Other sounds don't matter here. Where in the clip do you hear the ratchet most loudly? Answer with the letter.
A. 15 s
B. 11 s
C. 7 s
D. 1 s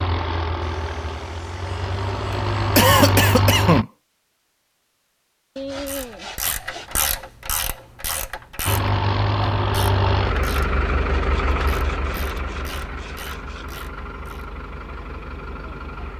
C.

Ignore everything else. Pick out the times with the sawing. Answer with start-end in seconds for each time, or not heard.
0.6-2.7, 5.5-7.0, 10.8-13.7.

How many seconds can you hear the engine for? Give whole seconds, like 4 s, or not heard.
11 s.